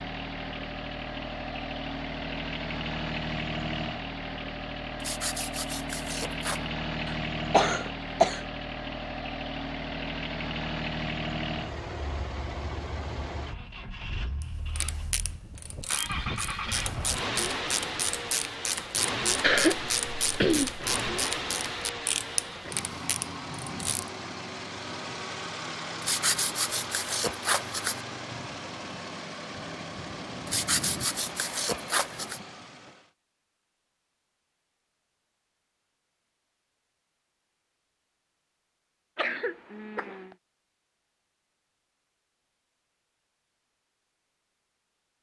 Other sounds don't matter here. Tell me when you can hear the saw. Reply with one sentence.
You can hear the saw from 5.0 to 6.6 s, from 26.0 to 28.1 s and from 30.4 to 32.4 s.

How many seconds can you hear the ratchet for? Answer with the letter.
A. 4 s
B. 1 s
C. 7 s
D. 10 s
D.